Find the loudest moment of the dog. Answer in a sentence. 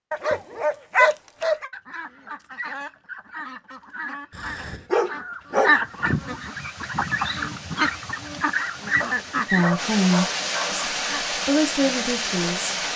The volume of the dog peaks at 1 second.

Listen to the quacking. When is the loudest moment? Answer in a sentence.
The loudest moment of the quacking is at 6 seconds.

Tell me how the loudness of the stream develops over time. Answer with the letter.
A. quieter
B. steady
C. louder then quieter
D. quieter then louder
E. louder
E.